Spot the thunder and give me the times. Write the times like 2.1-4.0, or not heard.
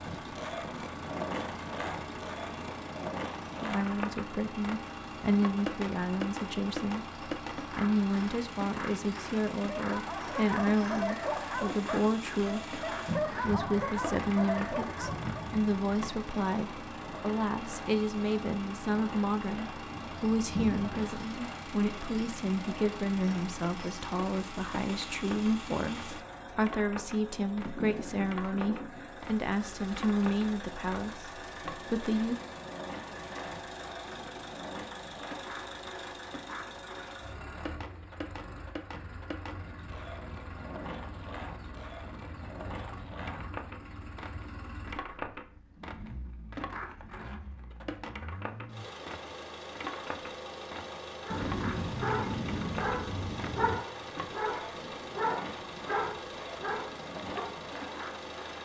13.1-15.8, 19.9-21.1, 51.3-53.8.